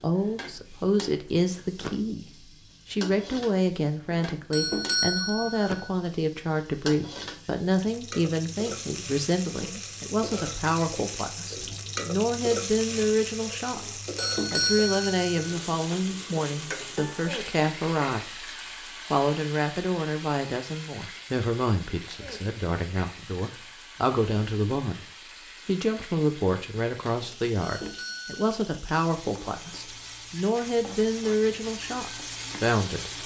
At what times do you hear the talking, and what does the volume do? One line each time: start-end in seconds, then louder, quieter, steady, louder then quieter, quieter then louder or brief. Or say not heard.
0.0-13.8 steady
14.5-33.1 steady.